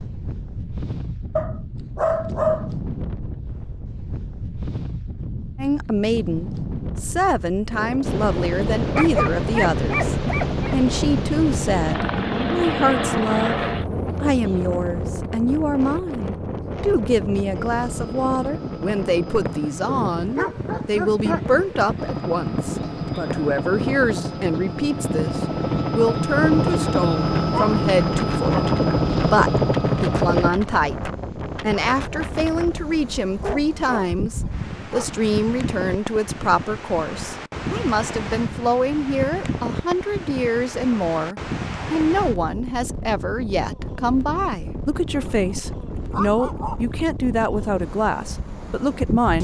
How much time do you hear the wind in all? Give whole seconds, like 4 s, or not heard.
49 s.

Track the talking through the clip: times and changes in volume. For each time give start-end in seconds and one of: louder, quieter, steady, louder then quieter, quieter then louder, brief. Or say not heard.
5.5-49.3 steady.